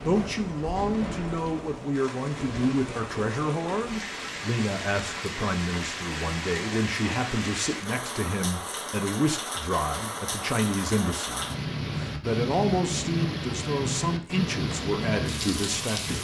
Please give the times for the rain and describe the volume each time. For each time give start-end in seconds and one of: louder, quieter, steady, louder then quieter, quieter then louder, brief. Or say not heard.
0.0-16.1 louder.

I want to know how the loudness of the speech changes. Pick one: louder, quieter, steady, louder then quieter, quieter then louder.
steady.